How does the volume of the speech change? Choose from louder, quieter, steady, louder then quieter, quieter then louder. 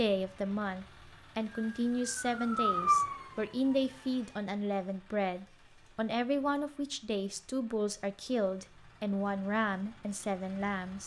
steady.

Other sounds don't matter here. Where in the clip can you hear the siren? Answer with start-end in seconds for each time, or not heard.
1.4-4.4.